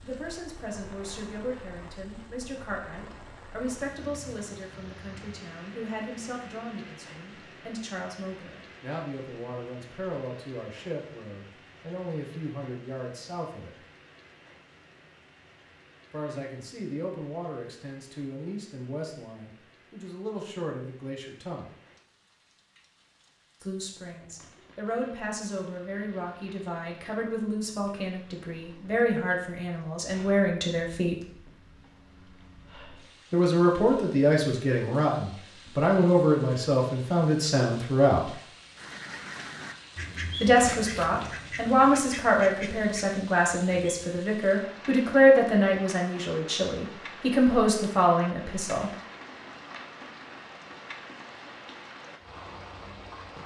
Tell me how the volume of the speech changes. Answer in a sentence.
The volume of the speech goes up.